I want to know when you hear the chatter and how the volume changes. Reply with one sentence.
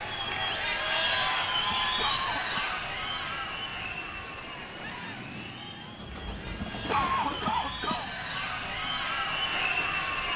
The chatter can be heard from 0.0 to 10.3 s, getting quieter then louder.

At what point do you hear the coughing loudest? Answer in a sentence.
The volume of the coughing peaks at 7 seconds.